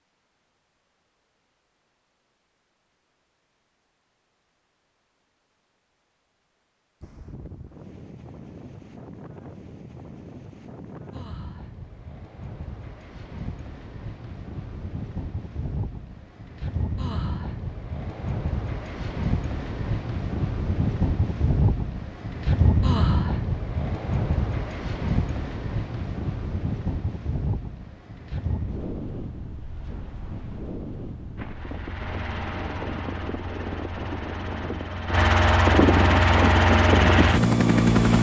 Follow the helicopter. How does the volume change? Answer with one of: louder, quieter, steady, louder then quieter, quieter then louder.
louder.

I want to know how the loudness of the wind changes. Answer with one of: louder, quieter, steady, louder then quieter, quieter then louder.
louder then quieter.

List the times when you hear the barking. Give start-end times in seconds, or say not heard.
not heard.